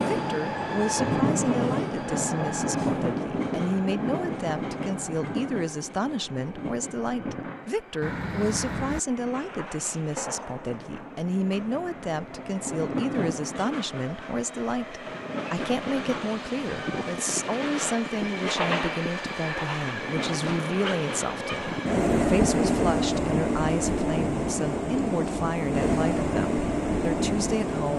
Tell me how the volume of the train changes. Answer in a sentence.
The volume of the train goes down, then up.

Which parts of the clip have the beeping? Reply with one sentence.
You can hear the beeping from 8.0 to 9.0 s.